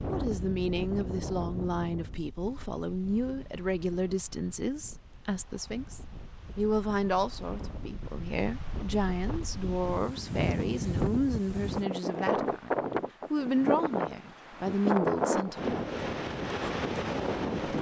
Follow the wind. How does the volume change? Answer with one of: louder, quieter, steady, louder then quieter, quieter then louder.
quieter then louder.